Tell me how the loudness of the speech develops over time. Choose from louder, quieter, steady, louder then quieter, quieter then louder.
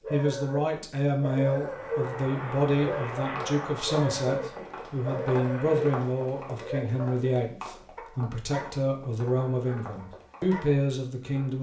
steady.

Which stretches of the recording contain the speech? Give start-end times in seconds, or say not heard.
0.1-11.5.